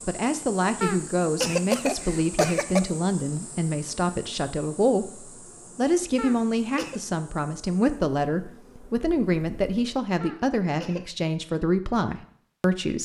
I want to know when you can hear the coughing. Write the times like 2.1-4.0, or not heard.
0.8-2.8, 6.2-7.0, 10.2-11.0.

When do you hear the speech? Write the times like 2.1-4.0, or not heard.
0.1-13.0.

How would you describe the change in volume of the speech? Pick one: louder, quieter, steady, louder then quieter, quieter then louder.
steady.